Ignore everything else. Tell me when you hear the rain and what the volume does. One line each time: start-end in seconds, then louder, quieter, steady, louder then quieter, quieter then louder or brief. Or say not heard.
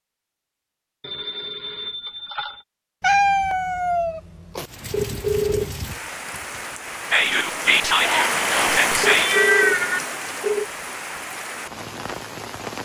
4.7-12.7 louder then quieter.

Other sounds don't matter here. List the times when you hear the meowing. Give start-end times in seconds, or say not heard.
3.0-4.7, 8.0-10.0.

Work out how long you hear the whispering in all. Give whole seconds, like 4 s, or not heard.
2 s.